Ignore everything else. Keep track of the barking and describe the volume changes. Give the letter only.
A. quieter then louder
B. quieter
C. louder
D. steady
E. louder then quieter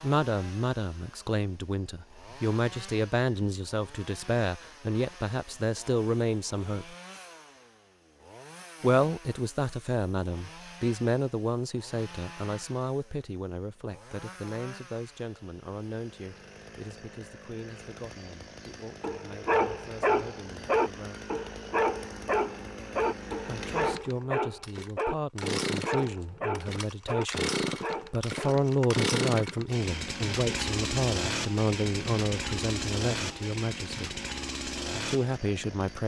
B.